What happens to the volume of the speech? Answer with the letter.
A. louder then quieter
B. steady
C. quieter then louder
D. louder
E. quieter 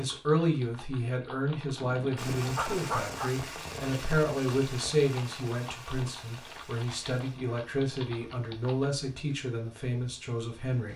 B.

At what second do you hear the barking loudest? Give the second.
3 s.